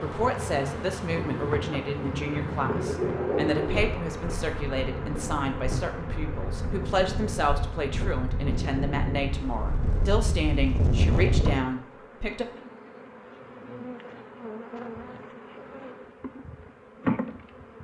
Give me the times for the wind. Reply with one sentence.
You can hear the wind from 0.0 to 11.6 s.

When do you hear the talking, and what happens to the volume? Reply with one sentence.
The talking can be heard from 0.0 to 12.4 s, at a steady volume.